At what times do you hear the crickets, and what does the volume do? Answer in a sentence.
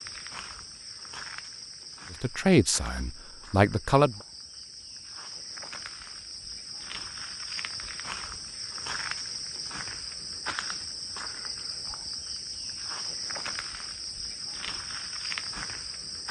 The crickets can be heard from 0.0 to 16.2 s, getting louder.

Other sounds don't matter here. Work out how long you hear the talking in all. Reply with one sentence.
The talking can be heard for 2 seconds in total.